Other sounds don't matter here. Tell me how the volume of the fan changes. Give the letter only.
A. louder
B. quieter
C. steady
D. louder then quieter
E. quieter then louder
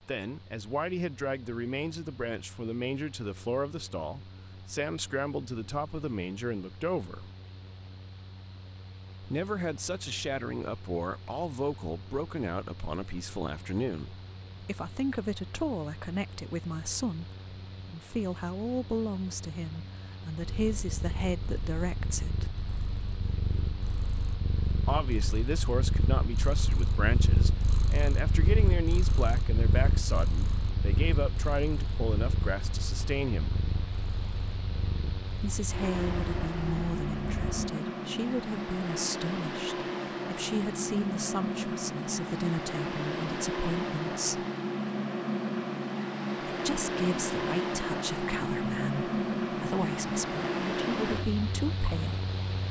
A.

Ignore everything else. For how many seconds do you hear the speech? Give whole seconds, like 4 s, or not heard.
44 s.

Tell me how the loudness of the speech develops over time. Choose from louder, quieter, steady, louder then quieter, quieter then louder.
steady.